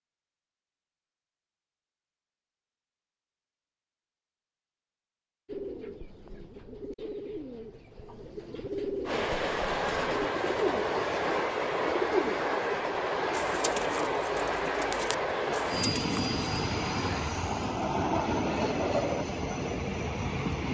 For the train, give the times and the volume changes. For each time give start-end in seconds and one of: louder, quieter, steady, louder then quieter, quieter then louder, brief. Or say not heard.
9.1-20.6 steady.